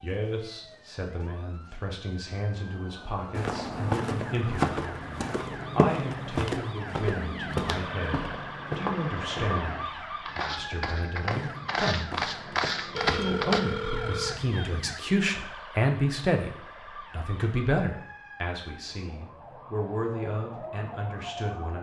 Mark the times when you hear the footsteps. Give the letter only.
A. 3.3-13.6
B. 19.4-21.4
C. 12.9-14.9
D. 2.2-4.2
A.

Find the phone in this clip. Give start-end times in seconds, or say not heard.
12.9-14.9.